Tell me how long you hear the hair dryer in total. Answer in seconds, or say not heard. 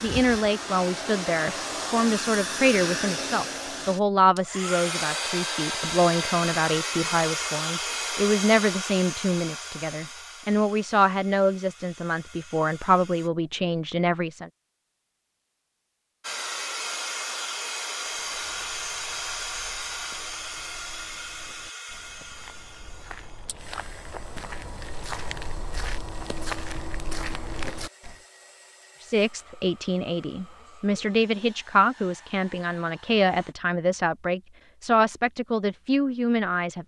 31 s.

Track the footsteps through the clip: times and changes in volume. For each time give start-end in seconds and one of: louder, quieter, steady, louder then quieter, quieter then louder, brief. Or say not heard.
18.1-28.1 louder.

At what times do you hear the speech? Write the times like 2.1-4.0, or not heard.
0.0-14.5, 29.0-36.8.